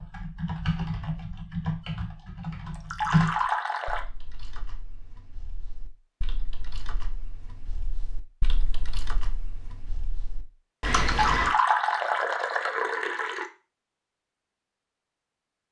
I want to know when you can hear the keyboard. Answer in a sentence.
You can hear the keyboard from 0.0 to 11.6 s.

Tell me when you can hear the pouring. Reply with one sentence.
You can hear the pouring from 2.7 to 4.0 s and from 10.9 to 13.4 s.